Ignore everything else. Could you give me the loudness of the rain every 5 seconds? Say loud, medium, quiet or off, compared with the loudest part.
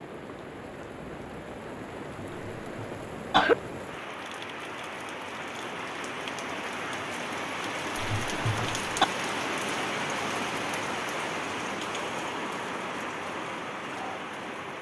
medium, loud, loud.